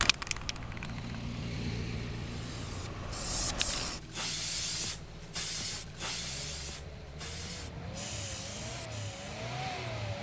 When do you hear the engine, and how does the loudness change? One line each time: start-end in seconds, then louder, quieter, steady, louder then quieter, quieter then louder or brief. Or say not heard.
0.0-10.1 quieter then louder.